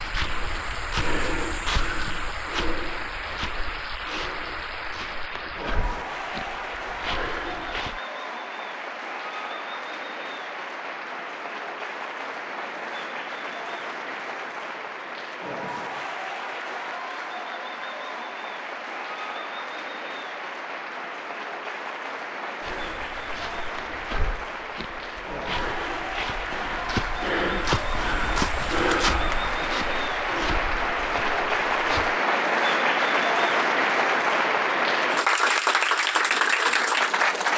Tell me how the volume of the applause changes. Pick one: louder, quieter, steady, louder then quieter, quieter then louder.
louder.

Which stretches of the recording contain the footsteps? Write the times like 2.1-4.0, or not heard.
0.0-8.0, 22.6-32.2.